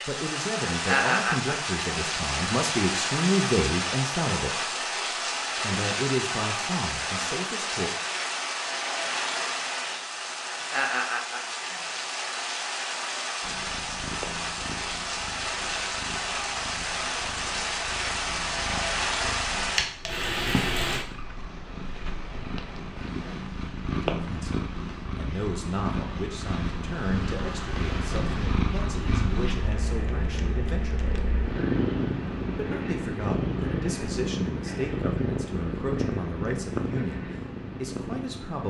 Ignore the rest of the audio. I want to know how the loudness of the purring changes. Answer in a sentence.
The loudness of the purring goes up.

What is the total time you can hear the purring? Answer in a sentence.
The purring can be heard for 25 seconds in total.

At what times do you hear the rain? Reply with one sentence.
You can hear the rain from 0.0 to 21.1 s.